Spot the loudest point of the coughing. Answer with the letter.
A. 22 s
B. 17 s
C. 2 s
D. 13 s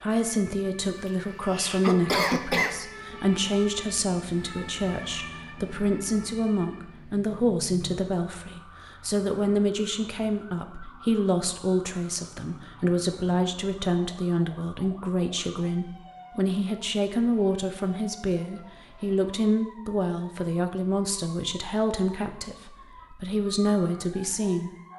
C.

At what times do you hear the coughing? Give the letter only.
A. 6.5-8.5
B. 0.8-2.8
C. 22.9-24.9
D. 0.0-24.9
B.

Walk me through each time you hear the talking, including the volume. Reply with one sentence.
The talking can be heard from 0.0 to 24.9 s, at a steady volume.